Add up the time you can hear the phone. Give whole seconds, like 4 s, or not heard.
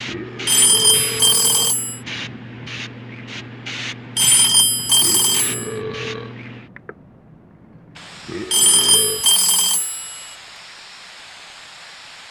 5 s.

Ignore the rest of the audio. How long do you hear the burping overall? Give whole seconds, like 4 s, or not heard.
4 s.